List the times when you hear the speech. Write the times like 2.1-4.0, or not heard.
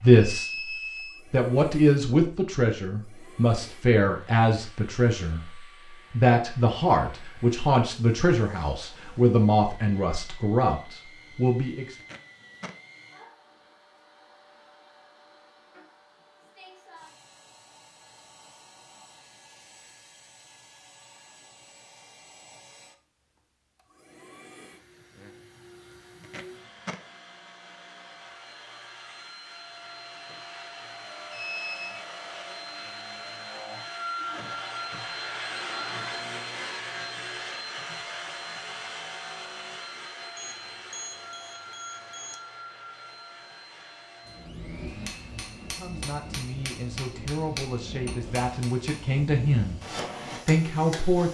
0.0-0.7, 1.3-11.9, 45.8-49.8, 50.5-51.3.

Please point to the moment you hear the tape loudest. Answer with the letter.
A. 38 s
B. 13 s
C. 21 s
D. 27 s
D.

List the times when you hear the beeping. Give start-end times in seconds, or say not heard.
0.3-1.2, 31.3-32.0, 40.4-42.4.